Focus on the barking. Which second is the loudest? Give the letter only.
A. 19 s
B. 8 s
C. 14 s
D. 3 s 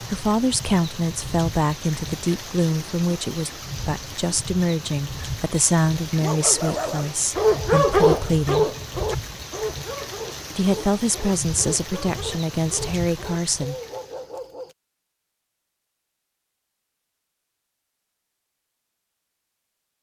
B.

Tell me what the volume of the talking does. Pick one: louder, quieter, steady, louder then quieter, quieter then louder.
steady.